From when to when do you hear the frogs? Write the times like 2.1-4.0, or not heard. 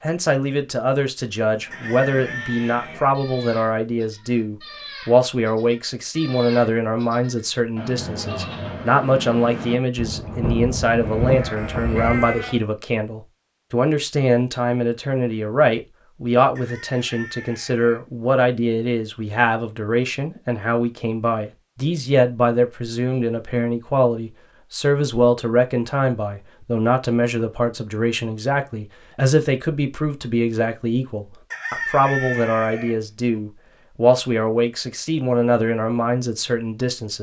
not heard.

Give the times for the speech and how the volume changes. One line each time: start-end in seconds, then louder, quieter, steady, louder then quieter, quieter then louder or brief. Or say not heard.
0.0-37.1 steady.